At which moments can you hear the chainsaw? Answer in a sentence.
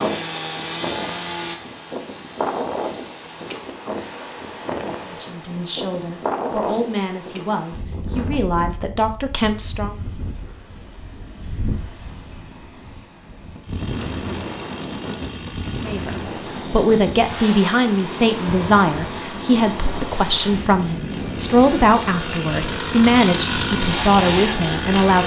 You can hear the chainsaw from 0.0 to 3.7 s and from 13.6 to 25.2 s.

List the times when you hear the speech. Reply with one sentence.
The speech can be heard from 5.0 to 9.9 s and from 15.8 to 25.2 s.